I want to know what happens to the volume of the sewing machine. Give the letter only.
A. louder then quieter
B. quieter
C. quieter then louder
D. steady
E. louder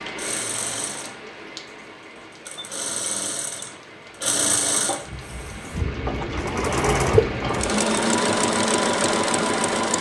E.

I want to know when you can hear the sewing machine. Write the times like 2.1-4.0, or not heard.
0.0-9.9.